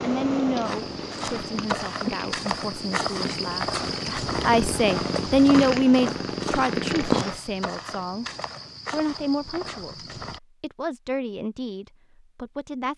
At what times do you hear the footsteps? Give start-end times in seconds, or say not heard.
0.6-10.4.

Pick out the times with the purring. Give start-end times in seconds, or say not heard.
0.0-7.4.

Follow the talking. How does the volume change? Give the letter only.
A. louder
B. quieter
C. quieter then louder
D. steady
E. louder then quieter
E.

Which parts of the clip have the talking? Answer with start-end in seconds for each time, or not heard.
0.0-8.2, 8.9-12.9.